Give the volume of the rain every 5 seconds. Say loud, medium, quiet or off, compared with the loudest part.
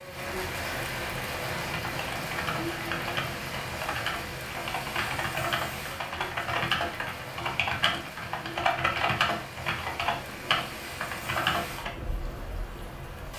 loud, medium, medium.